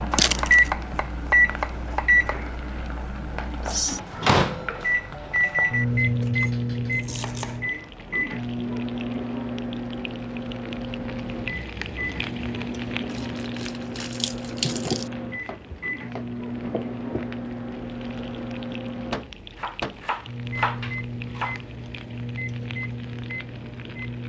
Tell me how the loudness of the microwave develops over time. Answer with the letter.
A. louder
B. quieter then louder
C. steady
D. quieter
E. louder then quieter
D.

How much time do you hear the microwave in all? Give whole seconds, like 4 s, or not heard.
24 s.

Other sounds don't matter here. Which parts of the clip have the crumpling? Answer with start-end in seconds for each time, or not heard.
0.1-0.7, 13.1-15.1.